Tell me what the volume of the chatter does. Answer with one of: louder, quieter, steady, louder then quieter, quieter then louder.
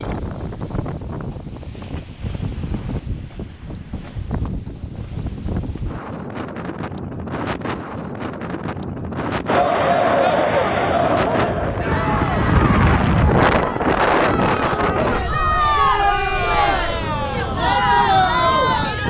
quieter then louder.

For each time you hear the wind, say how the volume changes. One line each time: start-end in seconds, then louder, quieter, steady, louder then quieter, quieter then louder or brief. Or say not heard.
0.0-19.0 louder then quieter.